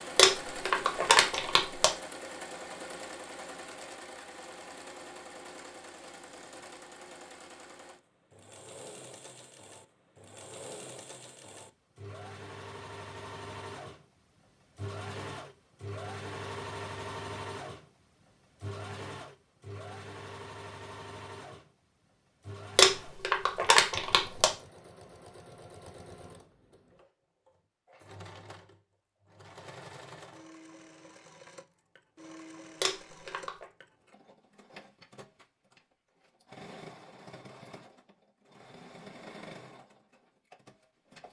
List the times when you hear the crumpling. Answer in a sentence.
The crumpling can be heard from 0.1 to 1.9 s, from 22.8 to 24.5 s and from 32.8 to 33.6 s.